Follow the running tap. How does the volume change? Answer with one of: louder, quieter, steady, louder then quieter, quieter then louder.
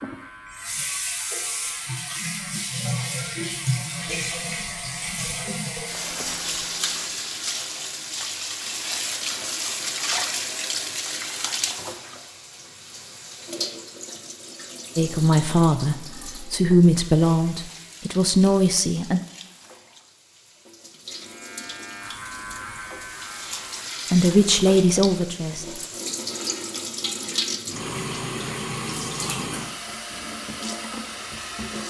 quieter then louder.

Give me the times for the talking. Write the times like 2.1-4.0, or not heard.
14.9-19.2, 24.1-25.6.